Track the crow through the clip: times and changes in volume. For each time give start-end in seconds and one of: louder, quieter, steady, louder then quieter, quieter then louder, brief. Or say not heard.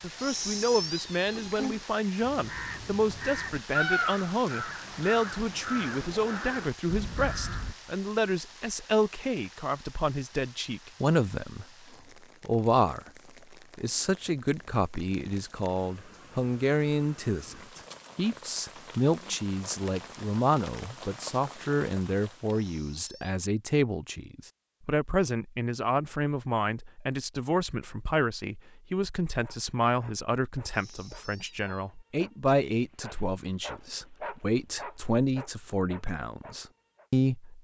2.2-7.8 louder then quieter.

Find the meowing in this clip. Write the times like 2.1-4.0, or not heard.
0.1-1.9, 22.5-23.4, 30.6-31.9.